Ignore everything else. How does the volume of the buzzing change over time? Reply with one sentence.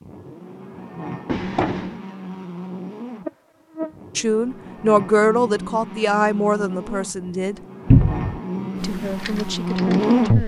The volume of the buzzing goes up.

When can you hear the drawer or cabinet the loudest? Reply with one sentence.
The volume of the drawer or cabinet peaks at 8 seconds.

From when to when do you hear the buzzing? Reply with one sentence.
You can hear the buzzing from 0.0 to 10.4 s.